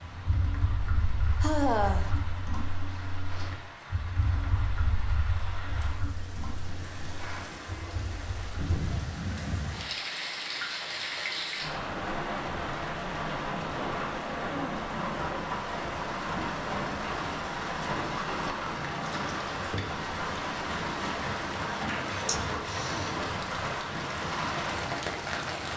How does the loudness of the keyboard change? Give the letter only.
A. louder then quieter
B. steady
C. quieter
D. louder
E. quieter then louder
C.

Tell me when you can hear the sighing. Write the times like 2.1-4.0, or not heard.
1.4-2.1, 21.9-23.1.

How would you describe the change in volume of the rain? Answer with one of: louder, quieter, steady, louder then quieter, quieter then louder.
louder.